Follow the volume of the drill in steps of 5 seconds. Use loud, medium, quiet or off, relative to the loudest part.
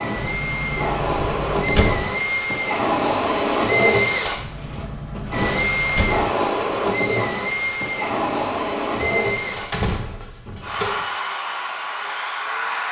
loud, loud, medium.